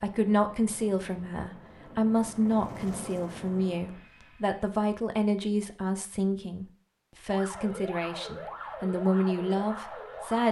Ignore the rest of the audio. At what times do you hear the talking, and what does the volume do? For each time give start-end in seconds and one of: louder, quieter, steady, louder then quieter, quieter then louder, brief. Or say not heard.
0.0-10.4 steady.